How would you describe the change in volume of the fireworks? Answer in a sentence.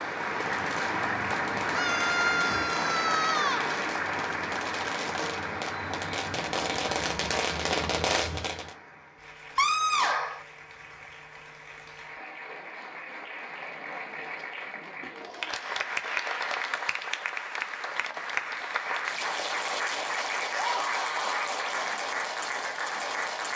The loudness of the fireworks goes up.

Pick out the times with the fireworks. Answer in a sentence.
You can hear the fireworks from 0.2 to 8.8 s.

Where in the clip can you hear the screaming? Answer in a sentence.
The screaming can be heard from 1.7 to 3.7 s, from 9.6 to 10.4 s and from 20.5 to 21.4 s.